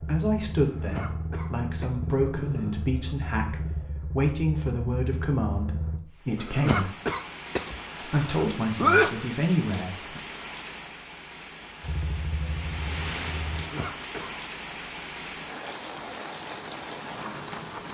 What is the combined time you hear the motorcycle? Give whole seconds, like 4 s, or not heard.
8 s.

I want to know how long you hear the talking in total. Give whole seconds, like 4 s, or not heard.
9 s.